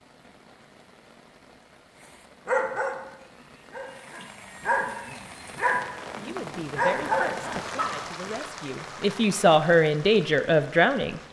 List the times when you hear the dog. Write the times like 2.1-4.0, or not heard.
2.5-8.2.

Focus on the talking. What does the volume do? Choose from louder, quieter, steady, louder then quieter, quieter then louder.
quieter then louder.